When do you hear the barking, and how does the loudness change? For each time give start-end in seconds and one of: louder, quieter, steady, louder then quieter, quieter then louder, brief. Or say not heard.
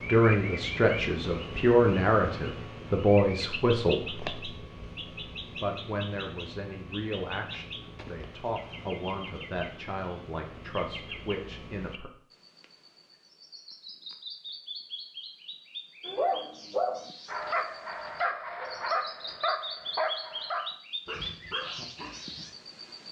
16.1-22.5 quieter.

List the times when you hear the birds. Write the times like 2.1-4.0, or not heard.
0.0-23.0.